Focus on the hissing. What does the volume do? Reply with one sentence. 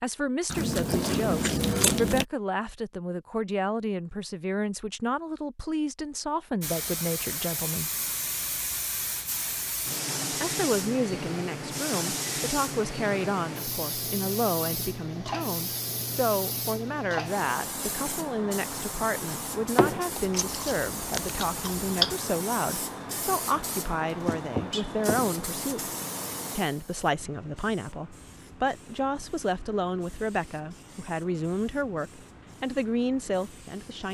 The volume of the hissing goes down.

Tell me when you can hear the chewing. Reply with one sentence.
The chewing can be heard from 0.5 to 2.2 s and from 20.1 to 22.1 s.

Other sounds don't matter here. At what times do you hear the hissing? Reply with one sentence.
You can hear the hissing from 6.6 to 34.1 s.